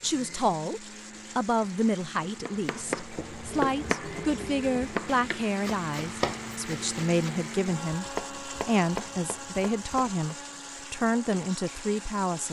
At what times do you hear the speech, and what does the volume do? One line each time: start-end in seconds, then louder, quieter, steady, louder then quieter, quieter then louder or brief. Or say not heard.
0.0-12.4 steady.